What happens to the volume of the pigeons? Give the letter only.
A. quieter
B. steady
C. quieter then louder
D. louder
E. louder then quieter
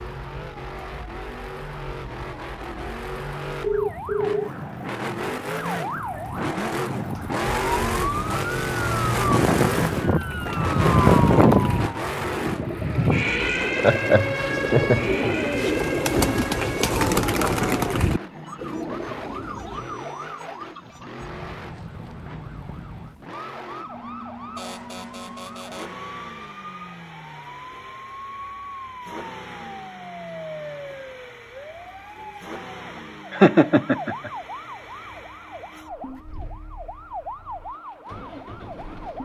E.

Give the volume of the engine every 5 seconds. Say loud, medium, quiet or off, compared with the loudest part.
medium, loud, loud, medium, quiet, quiet, quiet, quiet.